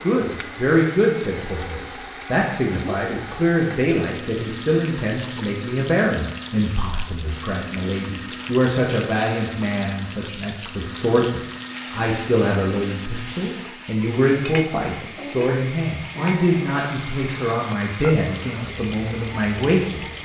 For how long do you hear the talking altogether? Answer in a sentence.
The talking can be heard for 20 seconds in total.